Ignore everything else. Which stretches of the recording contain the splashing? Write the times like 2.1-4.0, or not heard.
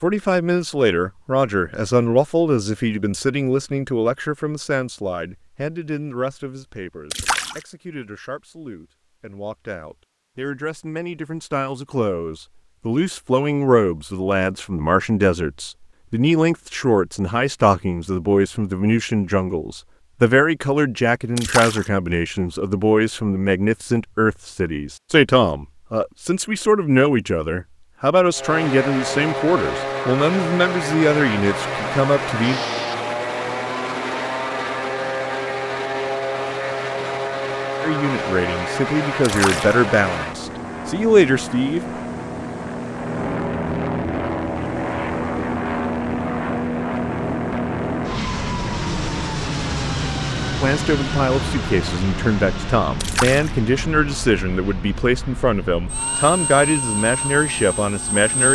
7.1-7.7, 21.4-21.9, 39.2-39.8, 53.0-53.5.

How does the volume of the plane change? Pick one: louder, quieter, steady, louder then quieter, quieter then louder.
quieter.